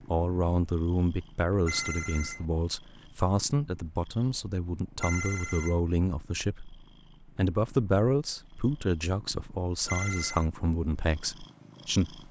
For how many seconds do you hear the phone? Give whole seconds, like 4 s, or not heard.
2 s.